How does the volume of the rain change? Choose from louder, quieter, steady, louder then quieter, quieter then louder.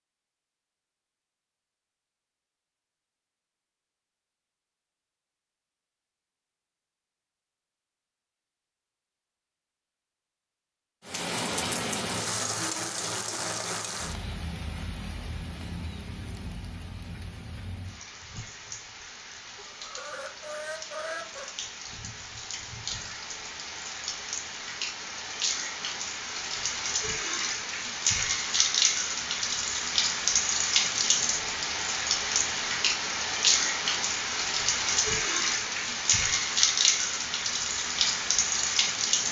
quieter then louder.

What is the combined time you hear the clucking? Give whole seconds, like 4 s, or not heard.
2 s.